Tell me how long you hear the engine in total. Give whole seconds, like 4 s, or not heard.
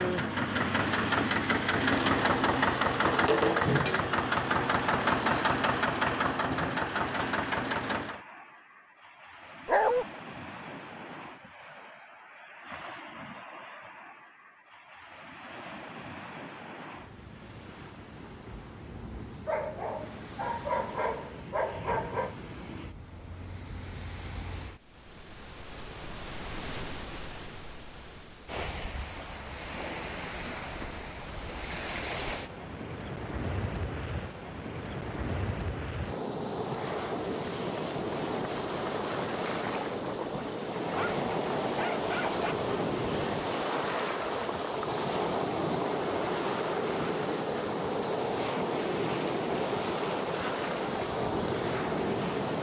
8 s.